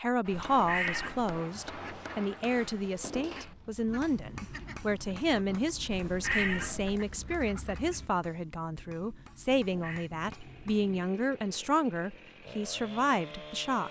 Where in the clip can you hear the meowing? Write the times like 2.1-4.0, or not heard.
0.3-1.4, 5.9-7.0, 9.7-10.1.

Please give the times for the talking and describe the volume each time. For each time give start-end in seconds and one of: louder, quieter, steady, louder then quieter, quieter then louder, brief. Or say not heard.
0.0-13.8 steady.